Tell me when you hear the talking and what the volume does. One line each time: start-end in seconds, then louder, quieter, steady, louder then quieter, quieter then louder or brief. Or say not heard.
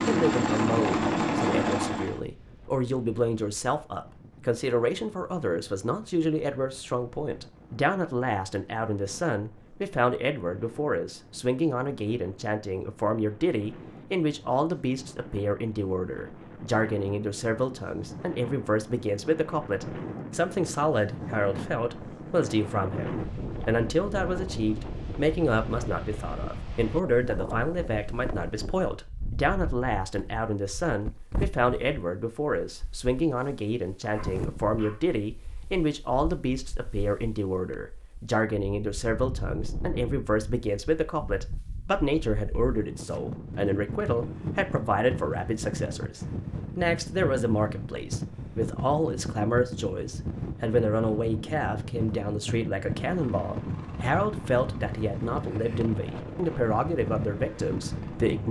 0.0-58.4 steady.